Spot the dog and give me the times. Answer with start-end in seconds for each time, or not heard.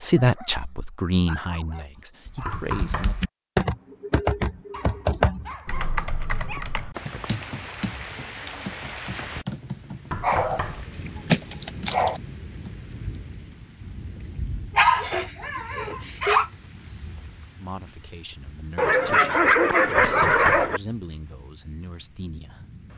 0.1-2.6, 4.7-6.8, 10.2-10.7, 11.2-12.2, 14.8-16.5, 18.8-20.8.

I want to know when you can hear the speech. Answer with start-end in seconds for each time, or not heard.
0.0-3.1, 17.6-22.7.